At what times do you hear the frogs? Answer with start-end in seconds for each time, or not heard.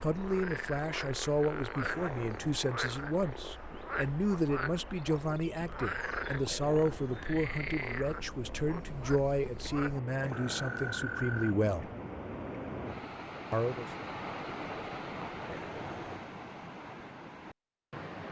0.0-11.6.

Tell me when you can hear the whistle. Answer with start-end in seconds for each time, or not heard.
not heard.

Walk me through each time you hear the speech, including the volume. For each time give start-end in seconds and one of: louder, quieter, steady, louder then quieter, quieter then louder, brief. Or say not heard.
0.0-11.9 steady
13.5-13.9 brief.